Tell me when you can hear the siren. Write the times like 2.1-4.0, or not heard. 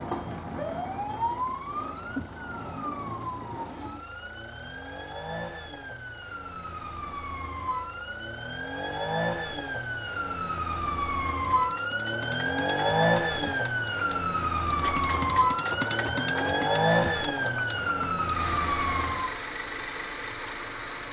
0.0-19.3.